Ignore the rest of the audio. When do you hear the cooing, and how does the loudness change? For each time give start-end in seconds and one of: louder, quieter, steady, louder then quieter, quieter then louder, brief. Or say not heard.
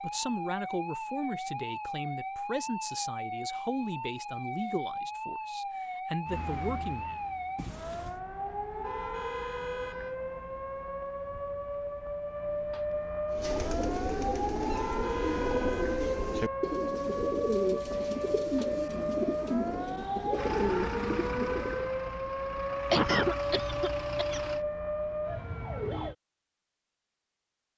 13.3-21.9 steady.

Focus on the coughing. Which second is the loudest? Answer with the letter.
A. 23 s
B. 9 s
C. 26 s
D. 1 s
A.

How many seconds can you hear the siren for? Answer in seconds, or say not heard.
26 s.